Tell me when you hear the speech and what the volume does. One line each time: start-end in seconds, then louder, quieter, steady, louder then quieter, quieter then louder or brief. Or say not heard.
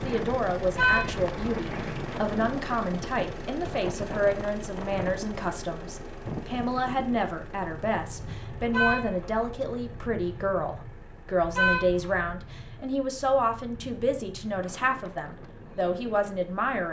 0.0-16.8 steady.